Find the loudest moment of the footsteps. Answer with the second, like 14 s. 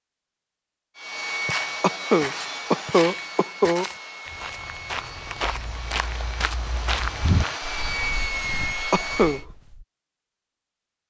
7 s.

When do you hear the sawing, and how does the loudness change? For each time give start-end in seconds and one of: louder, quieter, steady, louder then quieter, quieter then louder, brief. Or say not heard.
0.9-9.4 quieter then louder.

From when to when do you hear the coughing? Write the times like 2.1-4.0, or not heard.
1.8-3.9, 8.9-9.4.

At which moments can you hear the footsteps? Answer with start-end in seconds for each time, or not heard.
1.4-9.8.